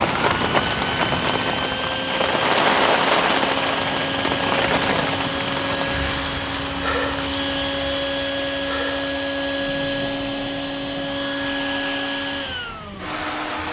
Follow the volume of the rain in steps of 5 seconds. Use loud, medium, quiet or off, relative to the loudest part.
loud, medium, quiet.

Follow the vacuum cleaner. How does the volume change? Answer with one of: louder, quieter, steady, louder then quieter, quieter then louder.
steady.